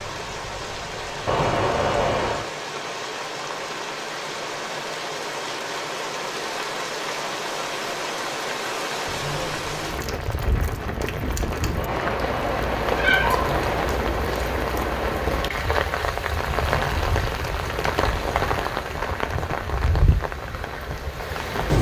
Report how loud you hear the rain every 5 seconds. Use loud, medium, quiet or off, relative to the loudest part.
medium, loud, loud, loud, loud.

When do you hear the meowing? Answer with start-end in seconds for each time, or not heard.
1.2-2.5, 11.8-14.0.